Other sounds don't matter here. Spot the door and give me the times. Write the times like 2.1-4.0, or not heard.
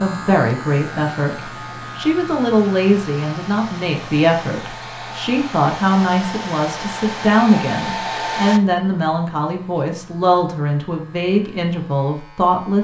not heard.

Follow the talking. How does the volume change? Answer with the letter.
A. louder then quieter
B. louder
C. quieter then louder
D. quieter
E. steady
E.